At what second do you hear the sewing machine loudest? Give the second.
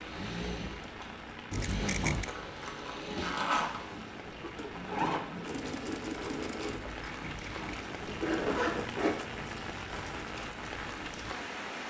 5 s.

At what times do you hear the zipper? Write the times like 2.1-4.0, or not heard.
1.8-4.0, 8.1-9.2.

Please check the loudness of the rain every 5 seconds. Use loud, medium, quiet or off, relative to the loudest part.
medium, loud, loud.